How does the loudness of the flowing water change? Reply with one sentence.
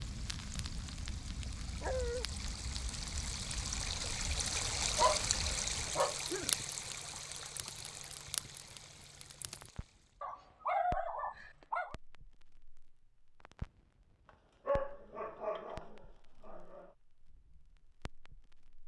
The loudness of the flowing water goes up, then down.